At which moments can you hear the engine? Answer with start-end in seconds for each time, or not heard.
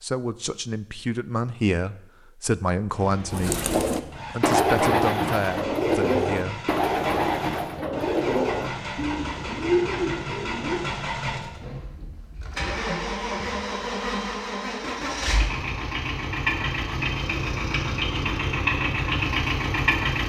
2.9-20.2.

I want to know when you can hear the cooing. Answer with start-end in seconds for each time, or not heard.
3.3-10.9.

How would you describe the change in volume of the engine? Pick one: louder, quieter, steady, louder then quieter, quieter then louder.
louder.